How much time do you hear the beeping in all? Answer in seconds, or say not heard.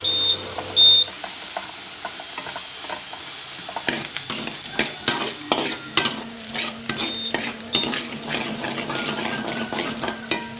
2 s.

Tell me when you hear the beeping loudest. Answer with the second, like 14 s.
1 s.